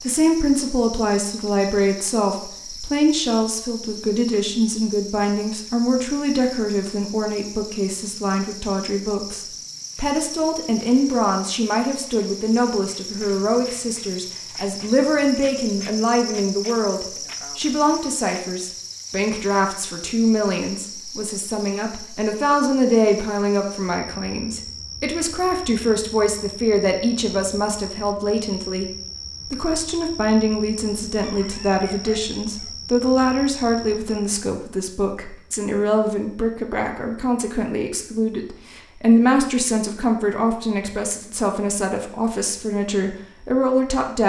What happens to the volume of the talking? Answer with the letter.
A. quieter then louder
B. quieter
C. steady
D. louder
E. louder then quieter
C.